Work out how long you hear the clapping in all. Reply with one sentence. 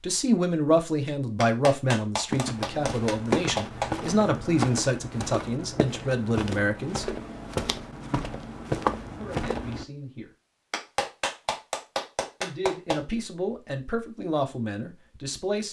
The clapping can be heard for 5 seconds in total.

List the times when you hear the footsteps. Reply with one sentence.
The footsteps can be heard from 2.3 to 9.8 s.